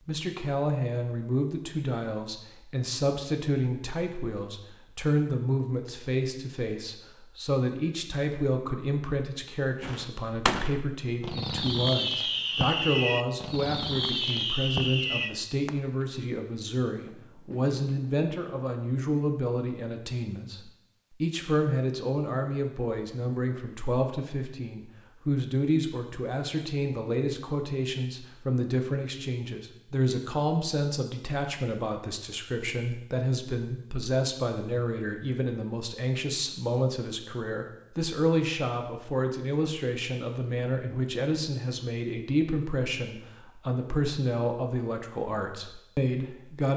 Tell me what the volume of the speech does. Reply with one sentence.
The loudness of the speech stays about the same.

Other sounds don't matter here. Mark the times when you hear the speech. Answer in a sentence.
The speech can be heard from 0.1 to 46.7 s.